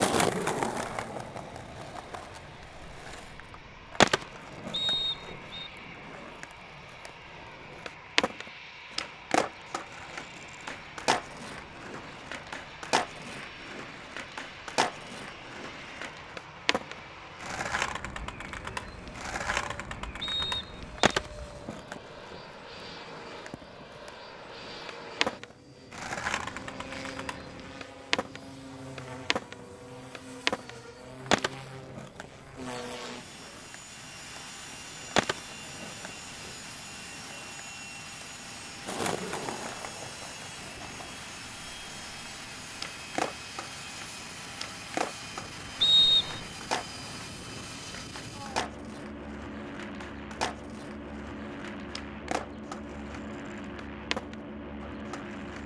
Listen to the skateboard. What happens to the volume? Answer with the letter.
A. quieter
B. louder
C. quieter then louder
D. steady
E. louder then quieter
A.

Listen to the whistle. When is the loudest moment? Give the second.
46 s.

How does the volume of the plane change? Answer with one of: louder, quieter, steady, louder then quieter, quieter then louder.
louder.